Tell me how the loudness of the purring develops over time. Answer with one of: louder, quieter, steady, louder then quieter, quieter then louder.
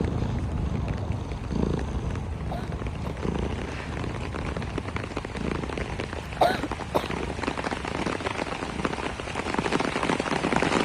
quieter.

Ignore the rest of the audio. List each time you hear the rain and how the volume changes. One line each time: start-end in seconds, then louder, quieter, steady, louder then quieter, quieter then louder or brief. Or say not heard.
0.0-10.8 louder.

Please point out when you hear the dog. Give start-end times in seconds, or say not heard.
not heard.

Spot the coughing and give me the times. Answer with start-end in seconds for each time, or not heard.
2.5-3.2, 6.4-7.2.